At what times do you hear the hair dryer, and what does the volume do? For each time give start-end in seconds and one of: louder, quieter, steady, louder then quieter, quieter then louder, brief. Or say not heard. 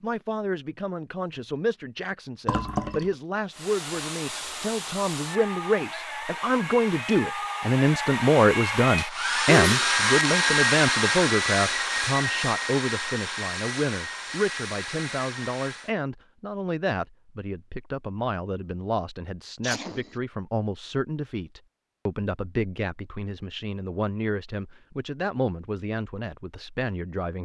3.5-15.9 louder then quieter.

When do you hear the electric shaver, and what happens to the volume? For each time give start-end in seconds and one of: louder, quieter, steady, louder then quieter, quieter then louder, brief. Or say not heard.
not heard.